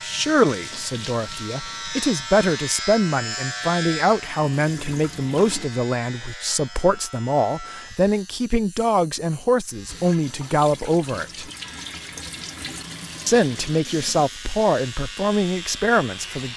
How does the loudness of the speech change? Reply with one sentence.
The volume of the speech stays about the same.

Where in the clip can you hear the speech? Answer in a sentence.
The speech can be heard from 0.0 to 11.5 s and from 13.2 to 16.5 s.